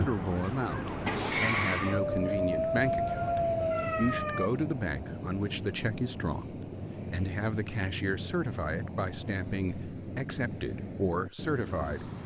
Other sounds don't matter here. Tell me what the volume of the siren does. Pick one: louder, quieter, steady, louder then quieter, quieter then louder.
louder.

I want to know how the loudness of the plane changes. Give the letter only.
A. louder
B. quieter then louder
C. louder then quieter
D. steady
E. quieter
D.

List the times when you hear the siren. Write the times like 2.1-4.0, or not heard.
0.0-4.5.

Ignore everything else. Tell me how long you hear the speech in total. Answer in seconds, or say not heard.
12 s.